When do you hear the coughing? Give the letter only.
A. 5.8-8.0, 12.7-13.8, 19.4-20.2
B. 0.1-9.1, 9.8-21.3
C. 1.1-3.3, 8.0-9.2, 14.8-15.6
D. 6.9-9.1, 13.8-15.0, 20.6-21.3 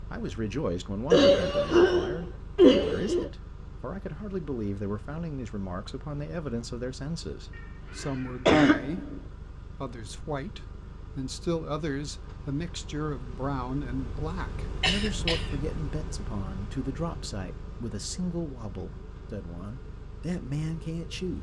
C.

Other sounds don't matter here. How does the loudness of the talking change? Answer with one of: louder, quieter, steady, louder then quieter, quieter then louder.
steady.